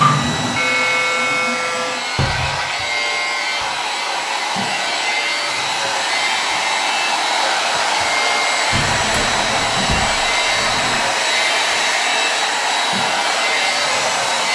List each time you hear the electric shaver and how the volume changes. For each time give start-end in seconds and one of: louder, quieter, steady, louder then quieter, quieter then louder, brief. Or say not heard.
0.0-14.5 steady.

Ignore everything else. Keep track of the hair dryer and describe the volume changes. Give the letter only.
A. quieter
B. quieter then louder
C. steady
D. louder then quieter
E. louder
E.